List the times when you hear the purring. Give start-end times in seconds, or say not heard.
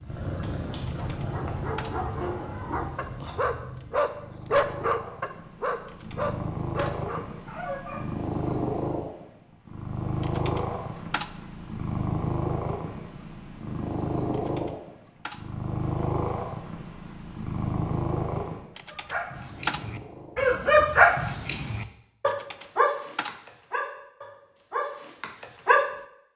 0.0-21.9.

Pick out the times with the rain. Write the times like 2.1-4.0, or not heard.
not heard.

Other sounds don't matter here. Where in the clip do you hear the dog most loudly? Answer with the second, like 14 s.
21 s.